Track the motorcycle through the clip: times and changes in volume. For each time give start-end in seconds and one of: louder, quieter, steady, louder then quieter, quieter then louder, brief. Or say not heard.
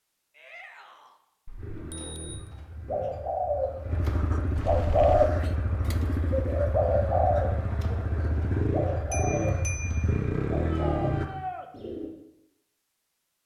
1.6-11.3 louder.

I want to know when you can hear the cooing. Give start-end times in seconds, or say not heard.
1.9-12.1.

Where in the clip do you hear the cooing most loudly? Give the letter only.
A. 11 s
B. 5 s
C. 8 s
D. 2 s
B.